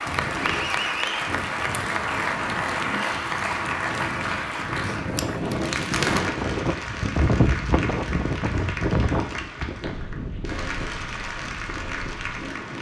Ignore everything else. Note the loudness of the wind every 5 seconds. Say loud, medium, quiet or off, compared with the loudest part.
medium, loud, medium.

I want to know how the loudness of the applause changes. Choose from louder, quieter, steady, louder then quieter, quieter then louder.
quieter.